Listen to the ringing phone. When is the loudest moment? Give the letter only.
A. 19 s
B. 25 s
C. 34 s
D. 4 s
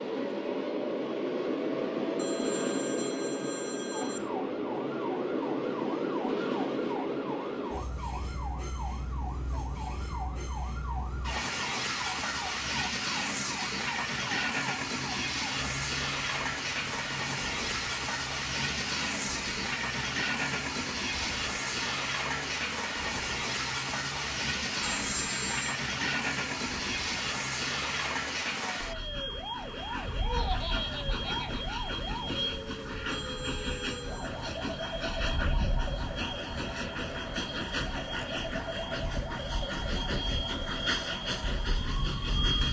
B.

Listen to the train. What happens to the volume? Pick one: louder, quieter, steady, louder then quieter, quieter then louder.
steady.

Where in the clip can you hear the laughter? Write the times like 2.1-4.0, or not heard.
30.2-31.6.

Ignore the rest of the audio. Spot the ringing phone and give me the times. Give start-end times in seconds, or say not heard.
2.1-4.2, 24.9-25.7, 33.1-34.3.